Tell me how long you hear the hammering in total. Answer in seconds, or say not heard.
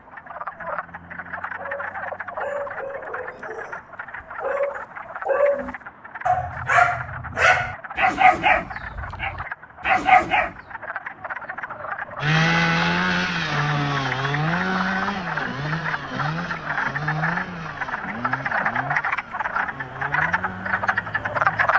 not heard.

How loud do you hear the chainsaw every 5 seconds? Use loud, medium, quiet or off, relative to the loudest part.
off, off, loud, medium, quiet.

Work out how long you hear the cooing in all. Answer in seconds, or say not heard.
not heard.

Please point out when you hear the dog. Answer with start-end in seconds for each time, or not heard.
1.6-10.5.